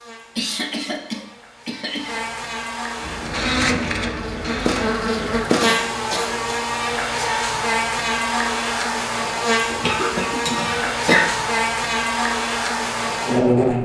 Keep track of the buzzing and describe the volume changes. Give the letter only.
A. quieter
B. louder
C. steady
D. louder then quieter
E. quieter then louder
B.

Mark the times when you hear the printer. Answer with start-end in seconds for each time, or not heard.
3.0-5.3.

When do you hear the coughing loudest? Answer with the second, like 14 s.
11 s.